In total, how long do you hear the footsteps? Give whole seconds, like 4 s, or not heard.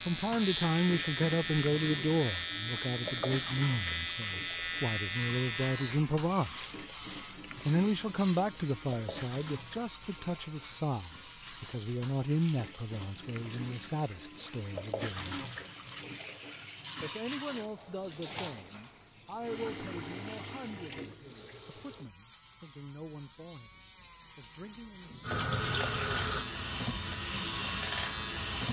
not heard.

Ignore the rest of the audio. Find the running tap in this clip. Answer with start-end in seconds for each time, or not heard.
0.1-22.1, 25.2-28.6.